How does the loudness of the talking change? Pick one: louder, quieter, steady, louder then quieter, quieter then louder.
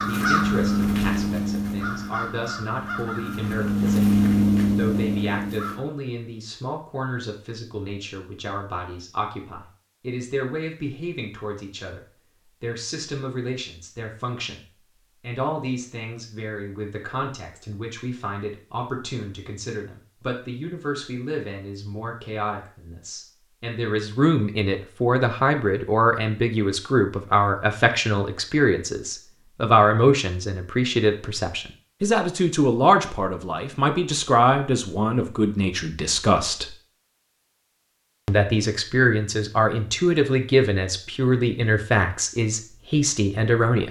louder.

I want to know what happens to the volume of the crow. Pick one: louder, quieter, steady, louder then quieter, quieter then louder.
quieter then louder.